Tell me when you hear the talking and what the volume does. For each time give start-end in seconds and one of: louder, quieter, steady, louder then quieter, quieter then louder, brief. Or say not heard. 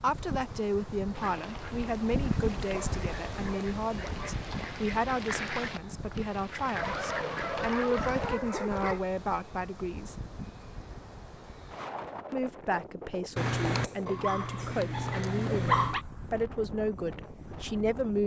0.0-10.2 steady
12.3-18.2 steady.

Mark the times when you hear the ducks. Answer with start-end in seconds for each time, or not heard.
1.1-8.3.